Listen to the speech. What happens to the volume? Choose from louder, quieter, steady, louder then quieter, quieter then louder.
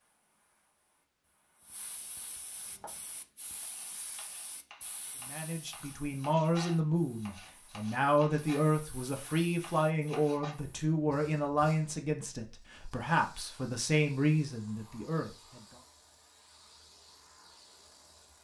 steady.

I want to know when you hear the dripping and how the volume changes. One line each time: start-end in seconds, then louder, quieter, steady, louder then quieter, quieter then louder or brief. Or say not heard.
not heard.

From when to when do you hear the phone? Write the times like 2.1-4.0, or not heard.
not heard.